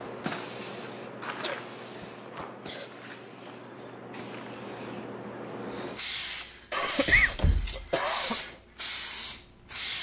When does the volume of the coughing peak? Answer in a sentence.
The volume of the coughing peaks at 7 seconds.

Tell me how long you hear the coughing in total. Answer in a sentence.
You can hear the coughing for 3 seconds altogether.